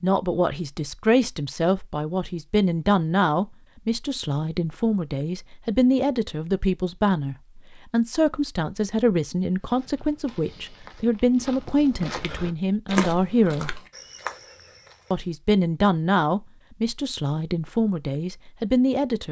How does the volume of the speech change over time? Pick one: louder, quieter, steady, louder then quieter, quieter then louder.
steady.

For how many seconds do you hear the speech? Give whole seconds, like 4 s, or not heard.
18 s.